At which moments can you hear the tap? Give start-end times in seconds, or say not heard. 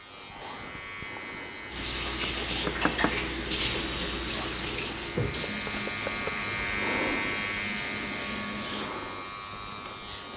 1.7-8.9.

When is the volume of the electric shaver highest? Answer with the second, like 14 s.
7 s.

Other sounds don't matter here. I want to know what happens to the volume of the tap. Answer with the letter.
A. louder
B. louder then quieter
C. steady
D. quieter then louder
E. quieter
E.